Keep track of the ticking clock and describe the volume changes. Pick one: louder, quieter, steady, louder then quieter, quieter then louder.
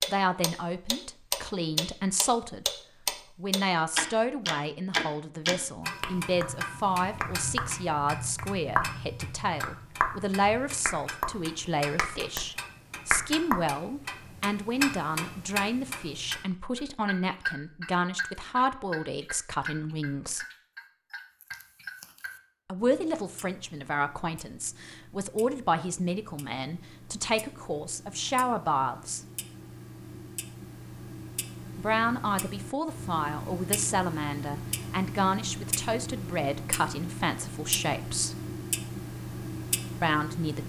quieter then louder.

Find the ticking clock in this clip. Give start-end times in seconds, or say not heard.
0.0-40.6.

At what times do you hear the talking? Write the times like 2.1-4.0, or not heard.
0.1-2.7, 3.4-20.4, 22.6-29.2, 31.8-38.4, 40.0-40.6.